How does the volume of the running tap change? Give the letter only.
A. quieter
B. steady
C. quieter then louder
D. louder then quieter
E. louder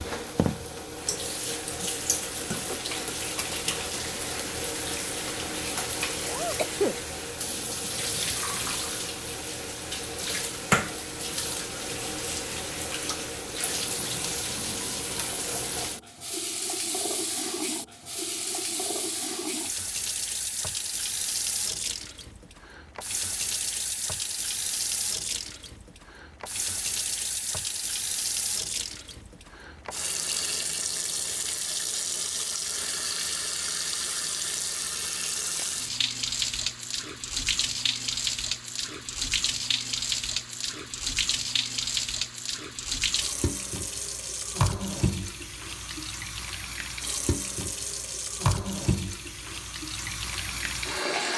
B.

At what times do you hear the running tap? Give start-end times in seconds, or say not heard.
0.0-51.3.